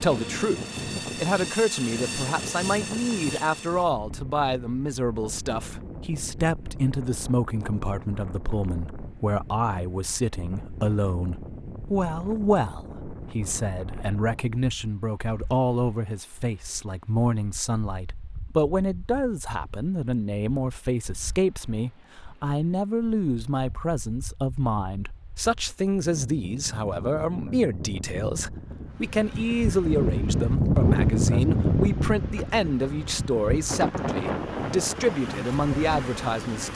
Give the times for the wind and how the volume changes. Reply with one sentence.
You can hear the wind from 0.0 to 36.7 s, getting quieter then louder.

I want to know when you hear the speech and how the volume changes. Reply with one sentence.
You can hear the speech from 0.0 to 36.7 s, at a steady volume.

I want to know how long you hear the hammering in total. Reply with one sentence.
You can't hear the hammering here.